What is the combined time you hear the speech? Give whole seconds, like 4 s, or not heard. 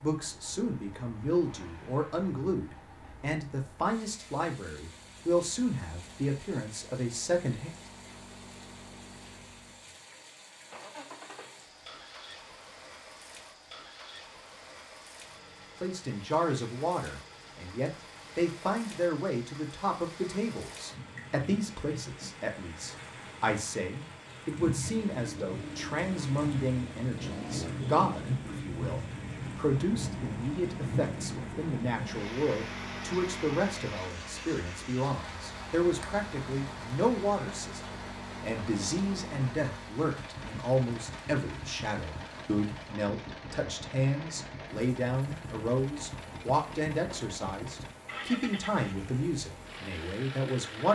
43 s.